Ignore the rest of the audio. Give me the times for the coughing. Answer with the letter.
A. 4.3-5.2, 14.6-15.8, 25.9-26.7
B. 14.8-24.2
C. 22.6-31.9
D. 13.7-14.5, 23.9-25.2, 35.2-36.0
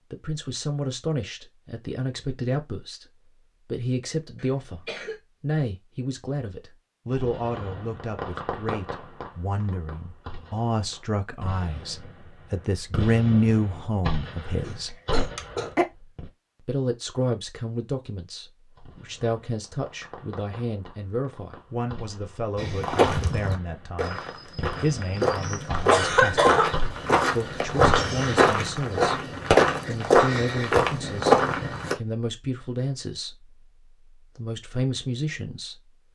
A.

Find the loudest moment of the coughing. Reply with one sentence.
The volume of the coughing peaks at 26 seconds.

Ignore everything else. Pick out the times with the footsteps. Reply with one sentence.
The footsteps can be heard from 22.6 to 31.9 s.